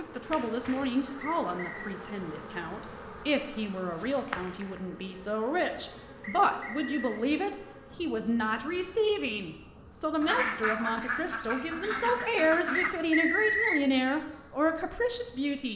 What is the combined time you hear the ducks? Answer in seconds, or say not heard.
3 s.